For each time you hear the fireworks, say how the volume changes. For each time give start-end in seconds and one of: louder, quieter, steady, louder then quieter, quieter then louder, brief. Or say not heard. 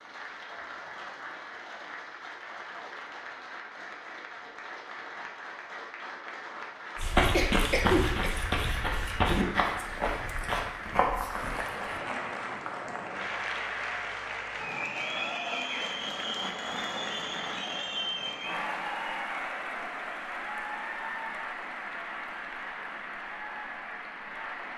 not heard.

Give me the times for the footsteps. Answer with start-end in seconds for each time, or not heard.
7.0-11.8.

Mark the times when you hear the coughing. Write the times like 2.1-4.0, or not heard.
7.3-8.3.